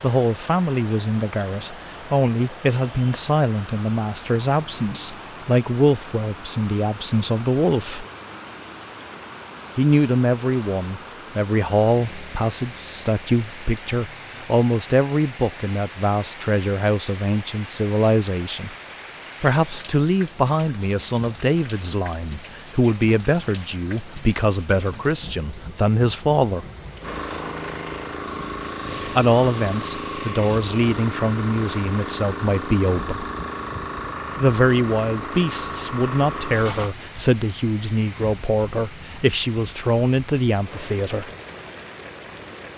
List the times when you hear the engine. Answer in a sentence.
The engine can be heard from 27.0 to 37.0 s.